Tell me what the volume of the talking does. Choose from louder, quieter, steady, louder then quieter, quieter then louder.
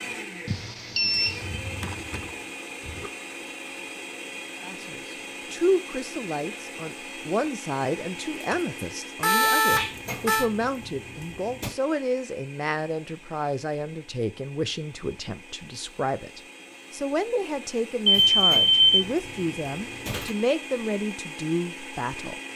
steady.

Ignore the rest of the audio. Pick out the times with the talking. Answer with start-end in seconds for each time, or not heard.
4.6-22.4.